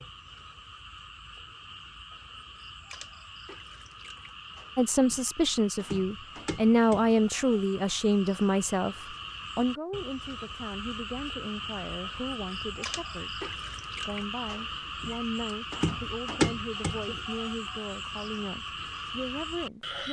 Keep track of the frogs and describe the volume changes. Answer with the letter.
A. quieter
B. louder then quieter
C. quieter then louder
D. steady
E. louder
E.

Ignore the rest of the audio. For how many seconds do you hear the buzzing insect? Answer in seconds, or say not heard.
not heard.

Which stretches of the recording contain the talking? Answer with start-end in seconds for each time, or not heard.
4.8-20.0.